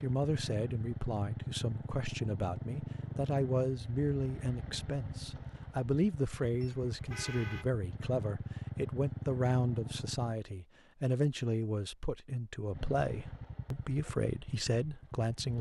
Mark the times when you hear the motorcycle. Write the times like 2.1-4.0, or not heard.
0.0-10.3, 12.7-15.5.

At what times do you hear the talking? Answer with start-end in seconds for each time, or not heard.
0.0-15.5.